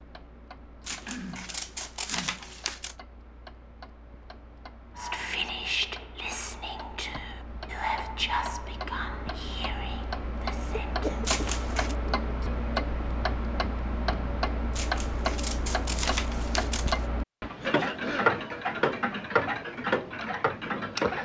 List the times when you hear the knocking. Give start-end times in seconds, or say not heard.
not heard.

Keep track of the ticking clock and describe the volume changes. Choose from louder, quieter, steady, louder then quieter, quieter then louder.
louder.